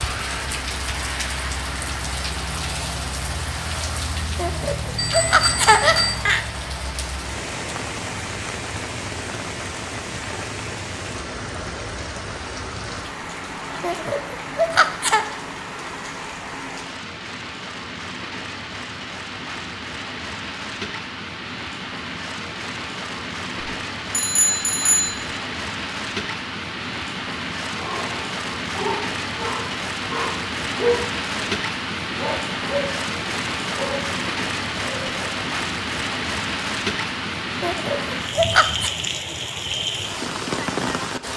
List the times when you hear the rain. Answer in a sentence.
You can hear the rain from 0.0 to 41.3 s.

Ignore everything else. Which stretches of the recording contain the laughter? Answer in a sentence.
The laughter can be heard from 4.3 to 6.5 s, from 13.8 to 15.2 s and from 37.6 to 38.9 s.